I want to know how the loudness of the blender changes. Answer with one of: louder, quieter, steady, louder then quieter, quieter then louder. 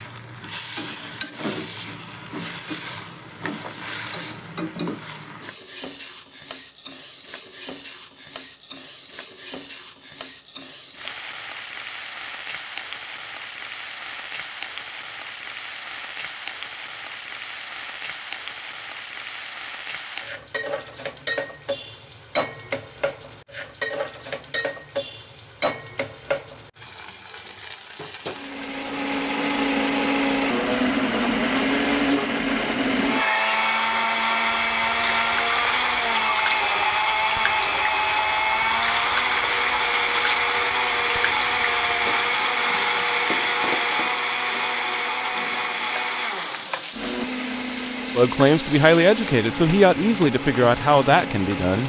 quieter.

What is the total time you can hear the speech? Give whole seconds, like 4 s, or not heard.
4 s.